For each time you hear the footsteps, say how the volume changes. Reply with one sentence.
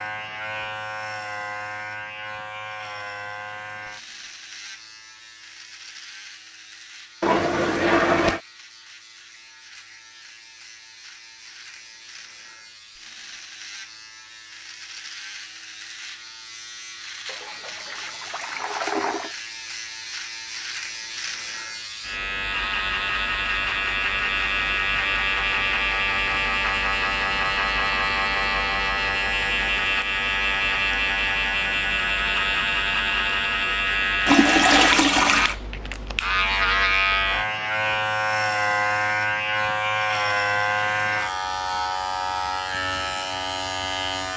You can't hear the footsteps here.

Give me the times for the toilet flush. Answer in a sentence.
The toilet flush can be heard from 7.2 to 8.4 s, from 17.2 to 19.4 s and from 34.2 to 35.5 s.